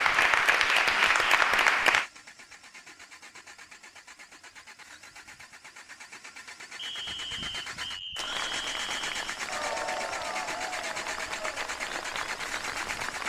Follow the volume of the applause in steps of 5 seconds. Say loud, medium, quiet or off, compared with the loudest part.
loud, quiet, quiet.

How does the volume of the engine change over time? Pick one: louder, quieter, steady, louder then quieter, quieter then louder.
louder.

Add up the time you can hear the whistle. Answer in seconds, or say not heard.
3 s.